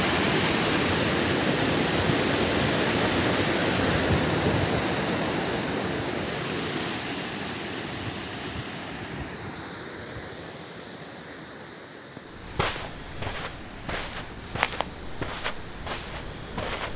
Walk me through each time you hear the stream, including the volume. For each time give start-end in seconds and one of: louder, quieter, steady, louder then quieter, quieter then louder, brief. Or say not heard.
0.0-16.9 quieter.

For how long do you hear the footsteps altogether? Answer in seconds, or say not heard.
5 s.